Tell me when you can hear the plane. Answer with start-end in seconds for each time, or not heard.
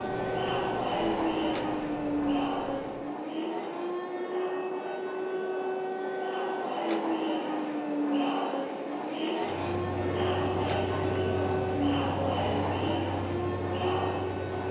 0.0-3.1, 9.4-14.6.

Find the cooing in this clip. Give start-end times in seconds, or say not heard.
not heard.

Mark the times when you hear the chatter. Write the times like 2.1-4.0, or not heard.
0.0-14.6.